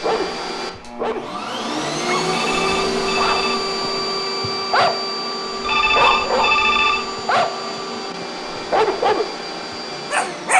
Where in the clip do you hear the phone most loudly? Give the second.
7 s.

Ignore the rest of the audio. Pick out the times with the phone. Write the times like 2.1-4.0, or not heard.
2.2-3.6, 5.6-7.0.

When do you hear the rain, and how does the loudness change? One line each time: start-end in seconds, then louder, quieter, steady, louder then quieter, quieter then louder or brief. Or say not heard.
not heard.